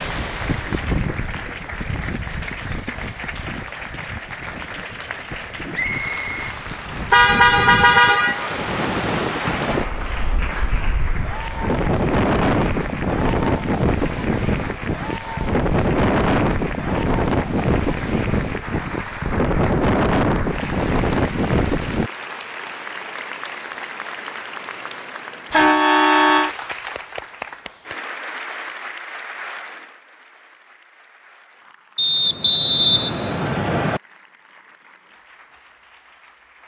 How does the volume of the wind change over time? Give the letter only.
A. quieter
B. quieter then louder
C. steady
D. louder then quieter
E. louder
E.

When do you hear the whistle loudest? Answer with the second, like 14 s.
33 s.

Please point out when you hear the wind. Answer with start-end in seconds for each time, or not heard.
0.0-22.1.